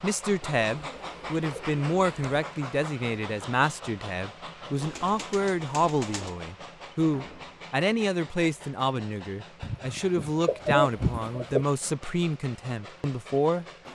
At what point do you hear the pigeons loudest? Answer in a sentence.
The volume of the pigeons peaks at 11 seconds.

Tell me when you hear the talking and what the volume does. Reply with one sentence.
The talking can be heard from 0.0 to 13.7 s, at a steady volume.